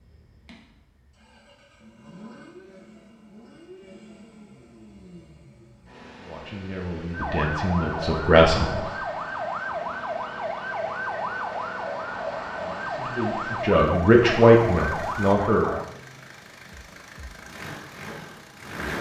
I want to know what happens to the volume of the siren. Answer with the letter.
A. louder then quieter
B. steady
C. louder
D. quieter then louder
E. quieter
B.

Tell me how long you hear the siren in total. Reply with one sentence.
You can hear the siren for 9 seconds altogether.